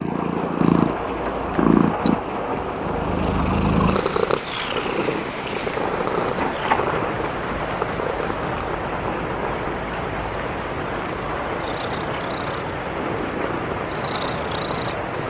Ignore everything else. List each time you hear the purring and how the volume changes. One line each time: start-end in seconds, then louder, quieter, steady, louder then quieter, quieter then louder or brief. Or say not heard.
0.0-15.2 quieter.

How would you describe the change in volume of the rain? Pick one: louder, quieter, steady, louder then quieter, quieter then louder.
steady.